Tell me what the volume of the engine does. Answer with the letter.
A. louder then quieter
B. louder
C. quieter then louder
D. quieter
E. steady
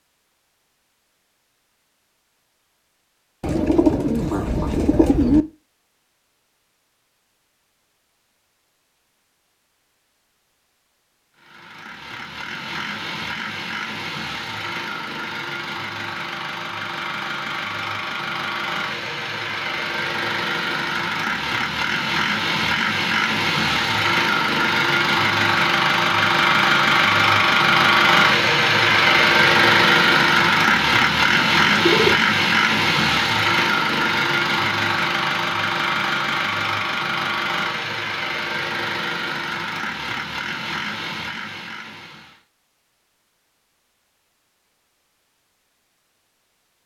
A.